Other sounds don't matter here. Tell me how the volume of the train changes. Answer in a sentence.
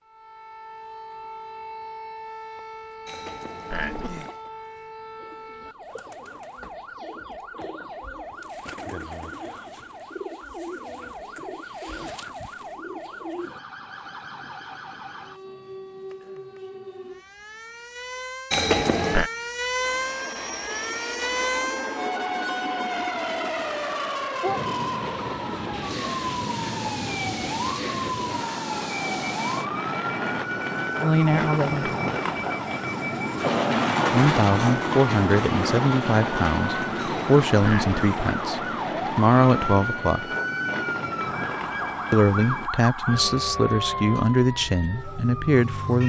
The volume of the train goes up, then down.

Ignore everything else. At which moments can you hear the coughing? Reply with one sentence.
You can hear the coughing from 3.0 to 4.5 s, from 18.5 to 19.3 s and from 37.0 to 38.2 s.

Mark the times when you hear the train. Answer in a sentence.
The train can be heard from 19.8 to 42.7 s.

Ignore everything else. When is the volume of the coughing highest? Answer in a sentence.
The loudest moment of the coughing is at 19 seconds.